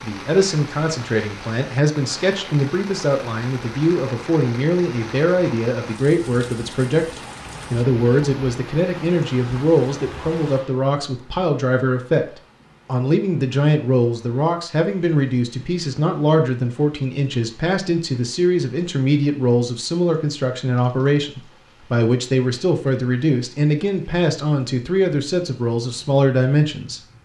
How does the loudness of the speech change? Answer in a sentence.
The loudness of the speech stays about the same.